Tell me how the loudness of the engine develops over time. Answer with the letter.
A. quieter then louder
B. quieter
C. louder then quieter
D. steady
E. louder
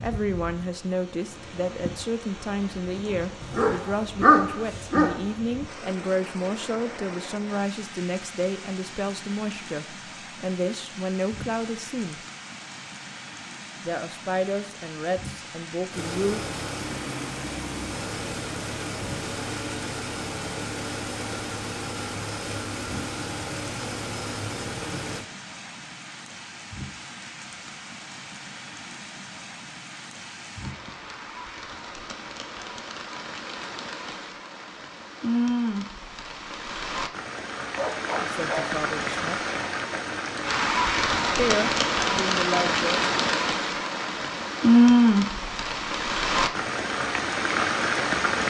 D.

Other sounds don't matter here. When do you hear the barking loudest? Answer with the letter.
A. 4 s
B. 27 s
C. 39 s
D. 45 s
A.